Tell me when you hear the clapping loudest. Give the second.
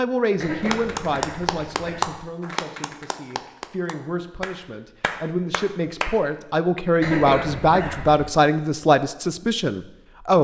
2 s.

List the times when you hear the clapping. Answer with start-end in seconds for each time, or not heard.
0.6-6.2.